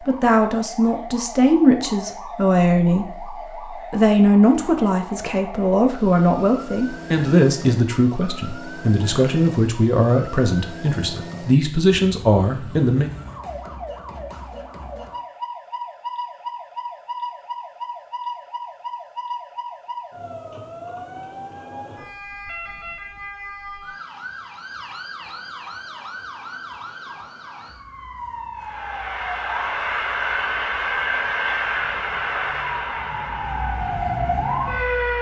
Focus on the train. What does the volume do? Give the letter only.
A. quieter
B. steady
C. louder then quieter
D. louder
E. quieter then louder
A.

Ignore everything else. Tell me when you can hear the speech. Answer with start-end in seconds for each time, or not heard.
0.0-13.1.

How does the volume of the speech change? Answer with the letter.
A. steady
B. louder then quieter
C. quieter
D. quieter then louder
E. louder
A.